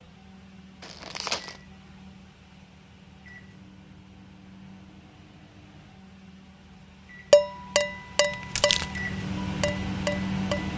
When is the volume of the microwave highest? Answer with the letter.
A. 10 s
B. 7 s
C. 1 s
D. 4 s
A.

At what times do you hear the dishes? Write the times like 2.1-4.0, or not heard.
7.3-10.7.